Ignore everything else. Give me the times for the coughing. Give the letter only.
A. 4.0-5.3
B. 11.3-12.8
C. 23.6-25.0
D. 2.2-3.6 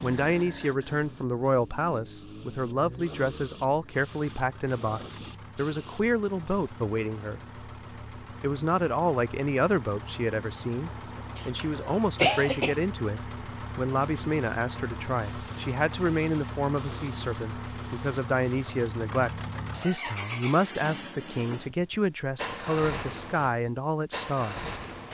B.